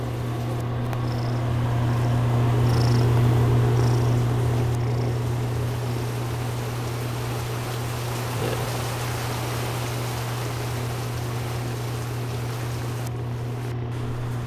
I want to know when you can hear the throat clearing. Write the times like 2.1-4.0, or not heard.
not heard.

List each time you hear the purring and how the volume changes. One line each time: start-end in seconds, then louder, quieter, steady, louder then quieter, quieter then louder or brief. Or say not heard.
0.0-14.4 quieter.